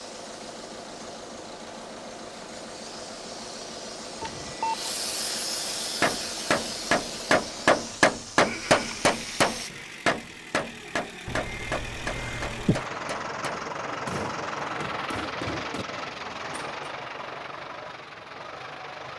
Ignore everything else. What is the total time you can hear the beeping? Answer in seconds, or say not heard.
2 s.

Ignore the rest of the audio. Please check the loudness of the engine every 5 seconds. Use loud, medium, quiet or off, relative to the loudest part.
medium, medium, loud, loud.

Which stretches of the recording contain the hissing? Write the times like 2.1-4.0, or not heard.
0.0-9.7.